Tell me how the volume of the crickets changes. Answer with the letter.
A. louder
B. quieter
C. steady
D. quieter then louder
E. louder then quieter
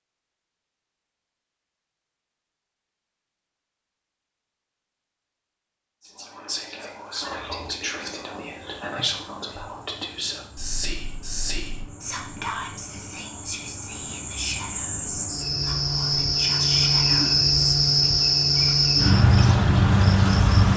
A.